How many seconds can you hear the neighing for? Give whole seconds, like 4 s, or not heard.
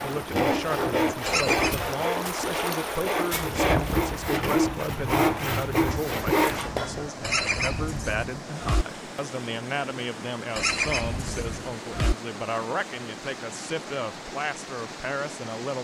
4 s.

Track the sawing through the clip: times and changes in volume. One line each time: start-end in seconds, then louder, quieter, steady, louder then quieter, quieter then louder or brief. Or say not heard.
0.0-7.0 quieter then louder.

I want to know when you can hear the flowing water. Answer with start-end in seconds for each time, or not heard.
0.0-15.7.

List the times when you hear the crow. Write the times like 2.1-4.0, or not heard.
not heard.